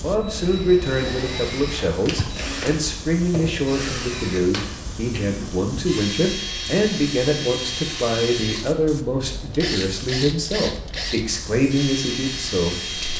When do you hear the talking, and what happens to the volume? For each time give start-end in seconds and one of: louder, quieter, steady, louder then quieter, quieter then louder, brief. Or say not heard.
0.0-13.1 steady.